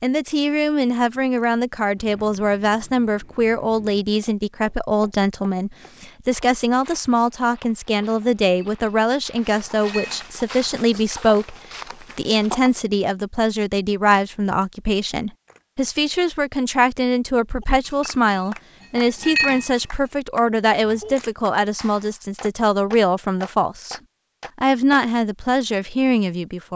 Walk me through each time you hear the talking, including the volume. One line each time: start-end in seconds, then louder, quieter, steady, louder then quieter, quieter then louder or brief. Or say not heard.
0.0-26.7 steady.